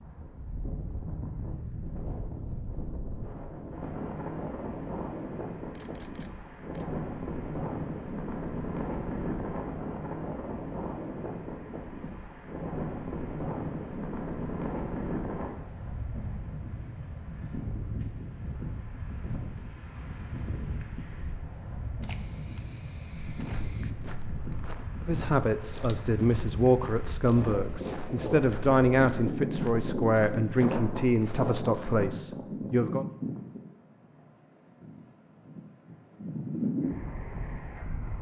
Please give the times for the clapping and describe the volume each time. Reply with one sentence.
You can't hear the clapping here.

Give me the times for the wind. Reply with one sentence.
The wind can be heard from 0.0 to 38.1 s.